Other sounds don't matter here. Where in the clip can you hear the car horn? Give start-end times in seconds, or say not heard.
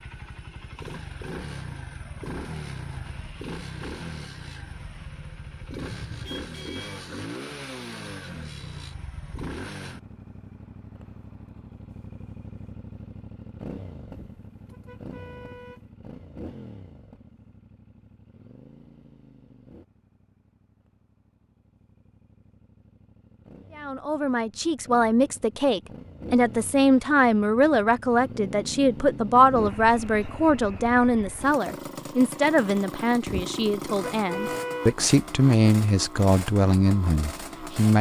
5.8-7.0, 14.1-15.8, 33.2-35.0.